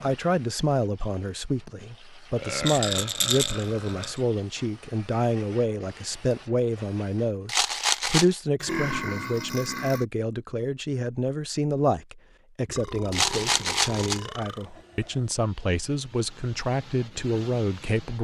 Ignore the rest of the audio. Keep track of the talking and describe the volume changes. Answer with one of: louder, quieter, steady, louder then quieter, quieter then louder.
steady.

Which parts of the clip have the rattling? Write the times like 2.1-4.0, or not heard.
2.6-4.1, 7.5-8.3, 13.1-14.2.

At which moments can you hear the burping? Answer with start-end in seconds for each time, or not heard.
2.4-4.2, 8.6-10.1, 12.7-14.7.